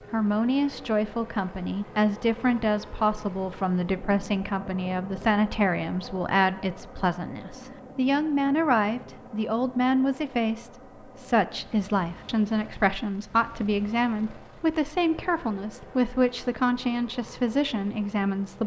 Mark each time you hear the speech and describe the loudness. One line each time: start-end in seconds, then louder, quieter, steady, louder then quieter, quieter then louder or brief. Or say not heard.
0.1-18.6 steady.